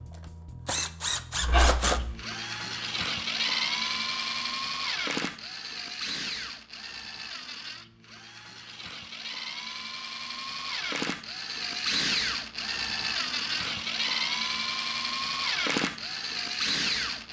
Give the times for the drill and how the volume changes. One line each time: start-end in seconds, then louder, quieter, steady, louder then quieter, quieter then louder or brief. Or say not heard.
0.0-17.2 quieter then louder.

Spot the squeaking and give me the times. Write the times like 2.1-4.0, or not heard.
1.4-2.0.